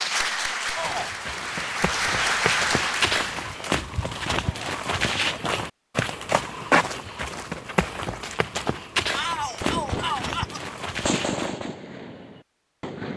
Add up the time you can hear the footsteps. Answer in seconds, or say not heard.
11 s.